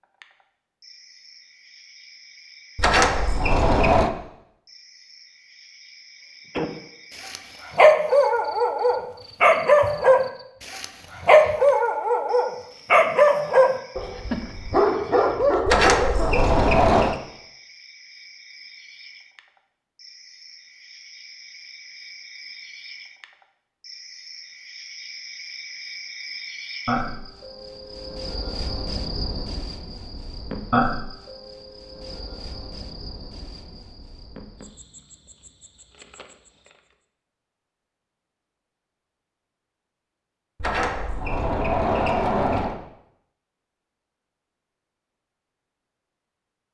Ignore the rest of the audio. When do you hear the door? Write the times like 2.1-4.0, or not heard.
2.8-4.1, 15.7-17.1, 40.6-42.8.